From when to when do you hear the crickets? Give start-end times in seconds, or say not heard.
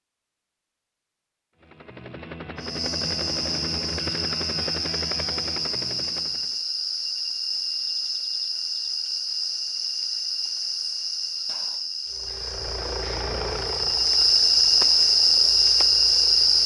2.5-16.6.